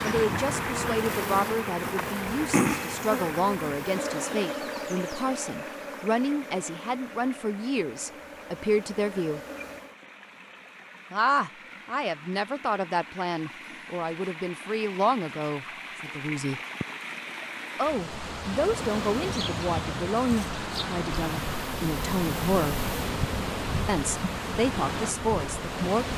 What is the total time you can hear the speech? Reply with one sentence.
The speech can be heard for 22 seconds in total.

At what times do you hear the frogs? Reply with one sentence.
The frogs can't be heard in this clip.